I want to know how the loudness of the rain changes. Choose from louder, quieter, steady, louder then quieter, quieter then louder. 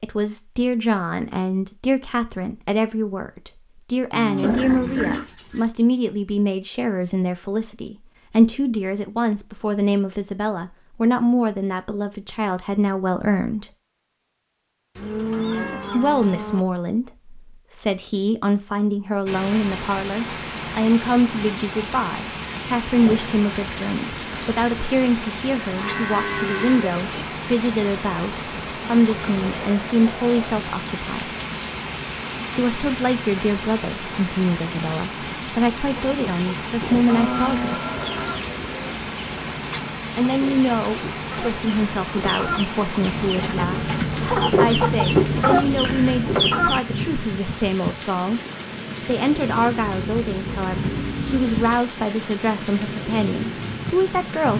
steady.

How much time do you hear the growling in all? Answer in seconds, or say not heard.
2 s.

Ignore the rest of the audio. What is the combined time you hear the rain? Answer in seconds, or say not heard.
35 s.